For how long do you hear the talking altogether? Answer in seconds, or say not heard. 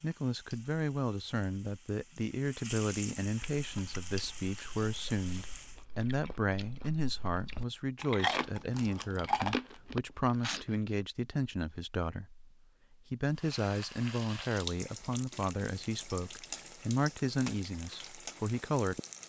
19 s.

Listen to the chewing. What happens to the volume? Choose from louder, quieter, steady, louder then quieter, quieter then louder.
louder.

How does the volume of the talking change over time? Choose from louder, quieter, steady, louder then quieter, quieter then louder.
steady.